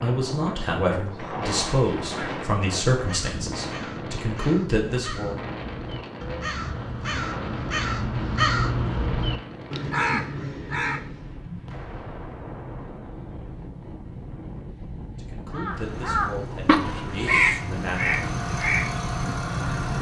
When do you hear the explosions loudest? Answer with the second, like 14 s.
12 s.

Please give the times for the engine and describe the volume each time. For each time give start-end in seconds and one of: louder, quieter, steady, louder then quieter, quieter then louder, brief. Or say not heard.
15.7-19.9 louder.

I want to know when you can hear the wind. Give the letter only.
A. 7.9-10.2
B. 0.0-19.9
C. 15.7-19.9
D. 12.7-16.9
B.